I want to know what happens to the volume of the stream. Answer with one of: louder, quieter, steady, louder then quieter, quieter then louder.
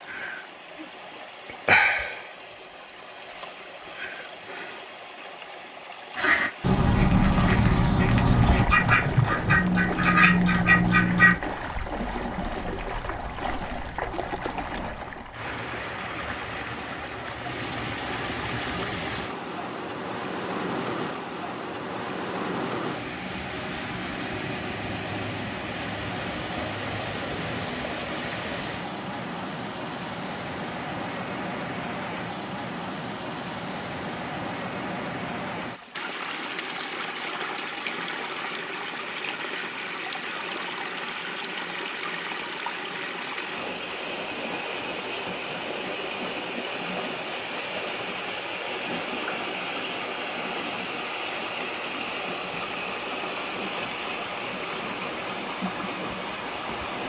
steady.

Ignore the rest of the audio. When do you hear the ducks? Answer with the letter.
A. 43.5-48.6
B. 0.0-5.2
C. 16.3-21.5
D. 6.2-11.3
D.